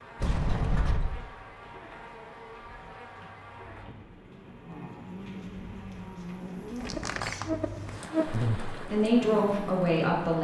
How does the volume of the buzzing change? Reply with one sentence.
The volume of the buzzing goes up.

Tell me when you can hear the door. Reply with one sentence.
The door can be heard from 0.1 to 1.2 s and from 6.8 to 8.1 s.